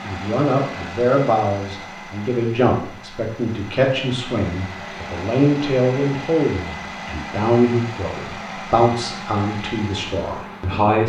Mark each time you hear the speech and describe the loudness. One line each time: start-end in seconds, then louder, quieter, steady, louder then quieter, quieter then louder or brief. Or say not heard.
0.0-11.0 steady.